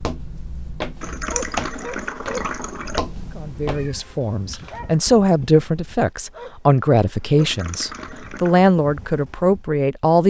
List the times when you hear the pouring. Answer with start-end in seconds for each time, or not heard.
1.0-3.0, 7.3-8.7.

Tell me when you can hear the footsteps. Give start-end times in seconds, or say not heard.
0.0-3.9.